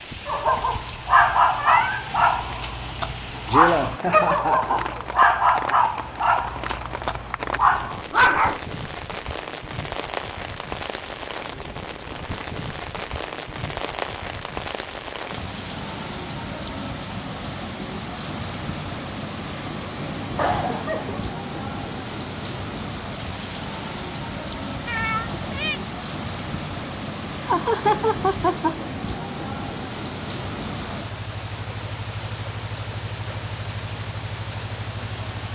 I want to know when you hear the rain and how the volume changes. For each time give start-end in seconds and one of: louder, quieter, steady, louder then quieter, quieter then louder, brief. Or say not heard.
0.0-35.5 steady.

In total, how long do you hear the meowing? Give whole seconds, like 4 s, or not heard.
2 s.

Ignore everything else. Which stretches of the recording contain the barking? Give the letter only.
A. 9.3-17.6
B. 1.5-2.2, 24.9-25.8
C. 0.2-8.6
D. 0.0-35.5
C.